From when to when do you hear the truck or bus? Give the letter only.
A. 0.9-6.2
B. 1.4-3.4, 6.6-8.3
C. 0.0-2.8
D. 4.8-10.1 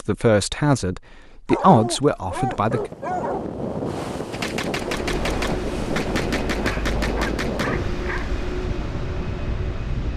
D.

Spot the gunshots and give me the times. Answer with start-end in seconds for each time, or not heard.
4.3-8.2.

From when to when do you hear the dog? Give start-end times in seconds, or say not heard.
1.4-3.4, 6.6-8.3.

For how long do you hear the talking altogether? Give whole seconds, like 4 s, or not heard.
3 s.